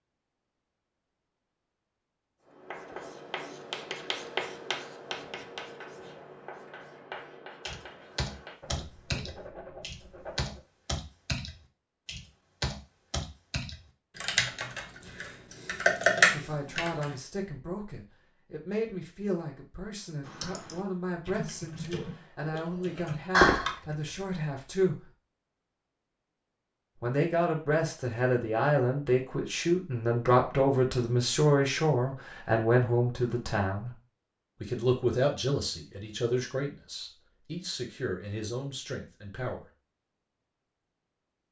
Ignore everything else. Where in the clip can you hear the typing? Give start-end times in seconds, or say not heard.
7.7-17.1, 20.2-24.2.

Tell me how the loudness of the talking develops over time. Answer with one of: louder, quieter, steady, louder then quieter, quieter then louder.
louder then quieter.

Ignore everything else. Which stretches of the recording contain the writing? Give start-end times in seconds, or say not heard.
2.5-10.6.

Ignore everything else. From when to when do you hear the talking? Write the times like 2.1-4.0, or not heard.
16.3-25.1, 27.0-34.0, 34.6-39.6.